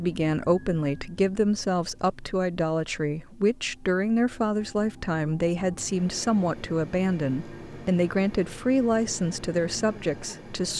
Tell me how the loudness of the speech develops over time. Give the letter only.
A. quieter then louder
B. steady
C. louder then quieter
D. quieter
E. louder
B.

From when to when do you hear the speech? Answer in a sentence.
The speech can be heard from 0.0 to 10.7 s.